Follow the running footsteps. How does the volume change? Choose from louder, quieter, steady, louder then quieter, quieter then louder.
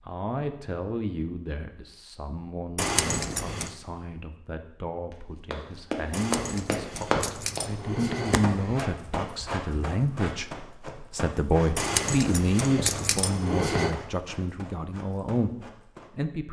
quieter.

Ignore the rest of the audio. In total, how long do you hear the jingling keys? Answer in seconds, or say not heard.
6 s.